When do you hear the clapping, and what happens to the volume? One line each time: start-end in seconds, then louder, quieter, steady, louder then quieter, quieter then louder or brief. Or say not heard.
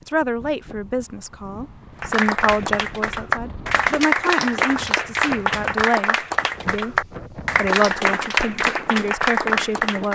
2.0-10.1 steady.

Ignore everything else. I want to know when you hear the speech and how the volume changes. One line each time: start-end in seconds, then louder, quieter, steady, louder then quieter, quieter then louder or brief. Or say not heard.
0.1-10.1 steady.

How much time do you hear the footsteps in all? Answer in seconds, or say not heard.
not heard.